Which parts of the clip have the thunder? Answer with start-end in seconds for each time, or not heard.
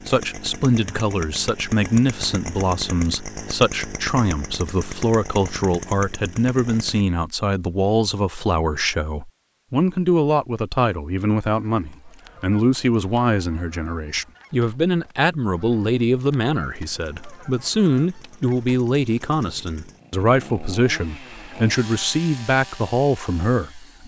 not heard.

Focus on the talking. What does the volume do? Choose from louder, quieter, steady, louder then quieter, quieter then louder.
steady.